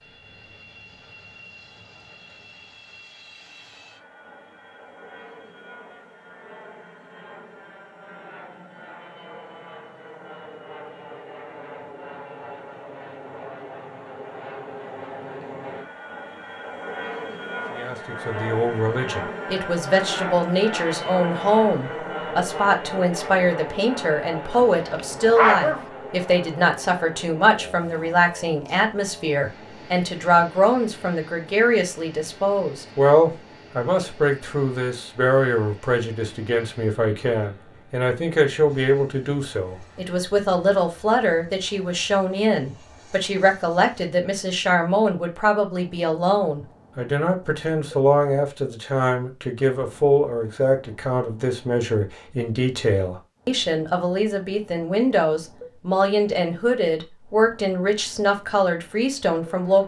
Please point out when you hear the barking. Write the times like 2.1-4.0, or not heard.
24.5-25.9.